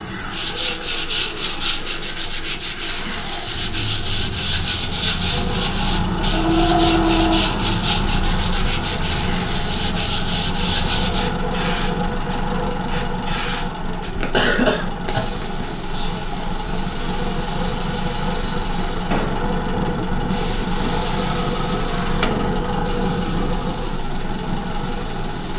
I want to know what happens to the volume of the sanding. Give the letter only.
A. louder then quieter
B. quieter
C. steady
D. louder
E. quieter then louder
C.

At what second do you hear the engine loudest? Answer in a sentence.
The loudest moment of the engine is at 7 seconds.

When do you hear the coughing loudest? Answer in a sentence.
The loudest moment of the coughing is at 15 seconds.